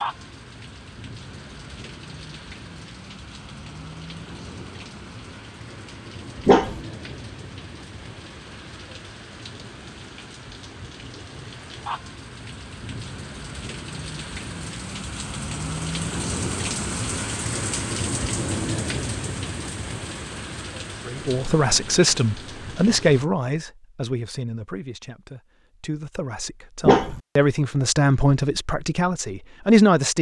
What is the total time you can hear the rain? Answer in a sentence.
You can hear the rain for 23 seconds altogether.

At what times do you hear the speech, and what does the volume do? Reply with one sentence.
You can hear the speech from 21.1 to 30.1 s, getting quieter then louder.